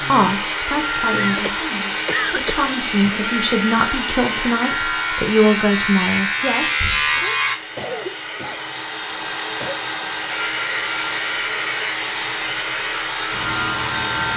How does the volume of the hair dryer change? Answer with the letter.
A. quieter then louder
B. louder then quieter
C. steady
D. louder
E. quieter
A.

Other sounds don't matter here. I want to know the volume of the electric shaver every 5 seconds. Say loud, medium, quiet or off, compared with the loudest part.
medium, loud, medium.